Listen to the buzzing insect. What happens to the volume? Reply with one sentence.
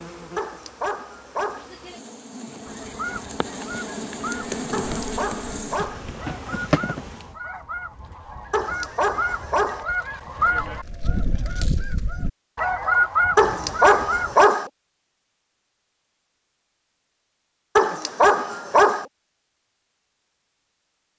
The volume of the buzzing insect goes up.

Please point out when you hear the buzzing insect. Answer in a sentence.
The buzzing insect can be heard from 0.0 to 7.3 s.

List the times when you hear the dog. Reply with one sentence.
You can hear the dog from 0.3 to 1.7 s, from 4.7 to 6.0 s, from 8.5 to 9.8 s, from 13.3 to 14.7 s and from 17.8 to 19.1 s.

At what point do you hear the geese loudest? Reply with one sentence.
The loudest moment of the geese is at 13 seconds.